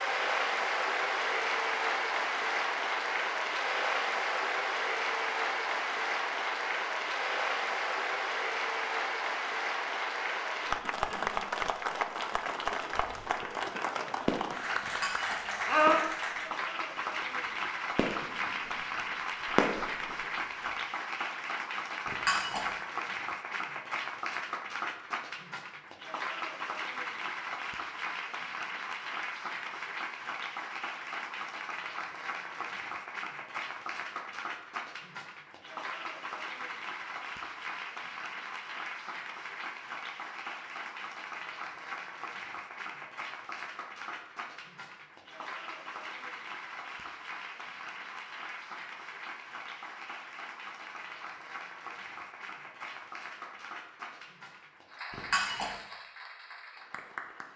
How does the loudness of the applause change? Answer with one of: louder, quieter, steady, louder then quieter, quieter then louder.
quieter.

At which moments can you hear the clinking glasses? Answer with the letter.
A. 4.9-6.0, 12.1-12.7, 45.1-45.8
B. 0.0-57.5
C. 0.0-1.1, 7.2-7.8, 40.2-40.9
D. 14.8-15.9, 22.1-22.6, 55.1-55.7
D.